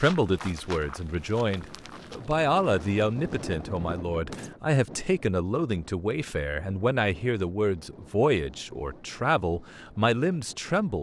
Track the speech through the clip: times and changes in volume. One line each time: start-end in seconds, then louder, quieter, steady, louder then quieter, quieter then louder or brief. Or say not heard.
0.0-10.9 steady.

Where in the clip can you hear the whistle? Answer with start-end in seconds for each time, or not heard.
not heard.